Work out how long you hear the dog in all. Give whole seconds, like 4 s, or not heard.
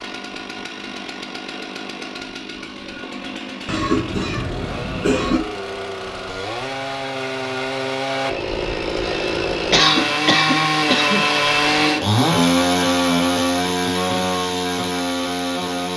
not heard.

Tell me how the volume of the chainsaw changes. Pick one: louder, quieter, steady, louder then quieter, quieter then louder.
louder.